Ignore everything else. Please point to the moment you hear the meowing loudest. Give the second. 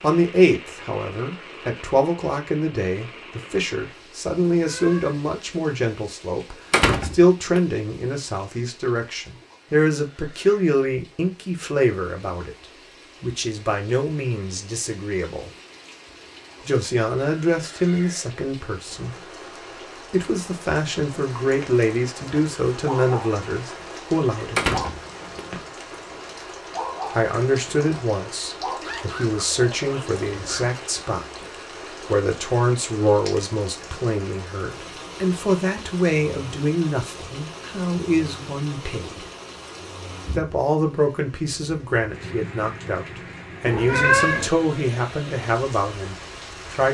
44 s.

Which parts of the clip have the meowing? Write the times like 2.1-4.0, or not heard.
4.5-5.2, 43.6-44.5.